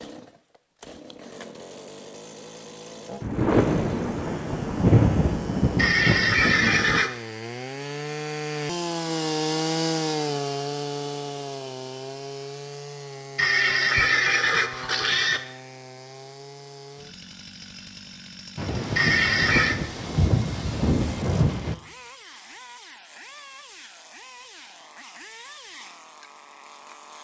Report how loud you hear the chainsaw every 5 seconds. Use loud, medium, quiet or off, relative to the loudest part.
quiet, loud, loud, quiet, quiet, quiet.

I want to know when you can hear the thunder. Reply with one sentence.
The thunder can be heard from 3.2 to 7.0 s and from 18.6 to 21.8 s.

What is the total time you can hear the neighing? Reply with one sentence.
You can hear the neighing for 4 seconds altogether.